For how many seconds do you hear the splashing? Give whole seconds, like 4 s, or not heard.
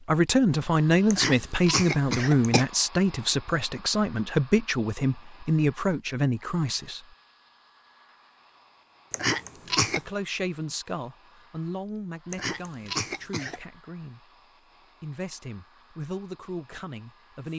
not heard.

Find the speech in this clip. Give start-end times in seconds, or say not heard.
0.1-7.0, 9.8-14.3, 15.0-17.5.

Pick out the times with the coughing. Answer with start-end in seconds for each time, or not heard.
1.1-2.6, 9.1-10.0, 12.3-13.6.